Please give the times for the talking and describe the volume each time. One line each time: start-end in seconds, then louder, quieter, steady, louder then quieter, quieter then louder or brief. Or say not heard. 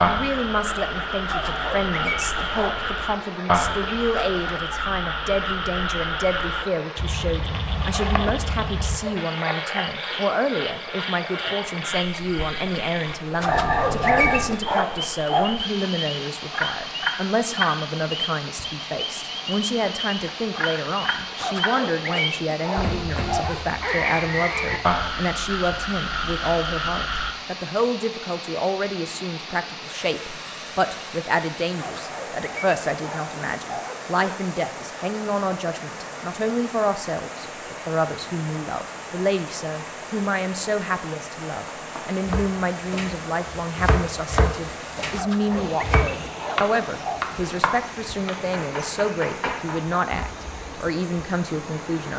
0.0-52.1 steady.